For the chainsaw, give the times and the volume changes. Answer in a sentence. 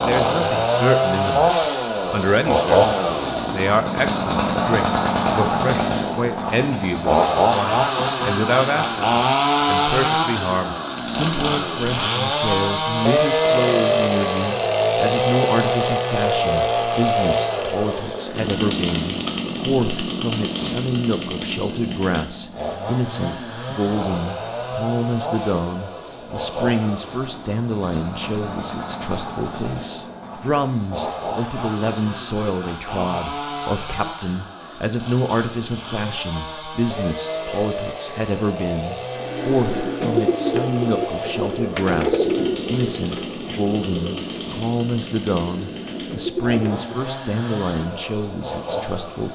You can hear the chainsaw from 0.0 to 49.3 s, getting quieter.